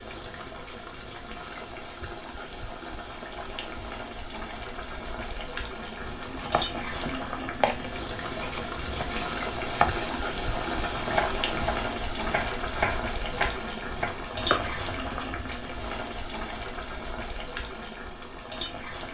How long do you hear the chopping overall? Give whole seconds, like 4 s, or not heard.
10 s.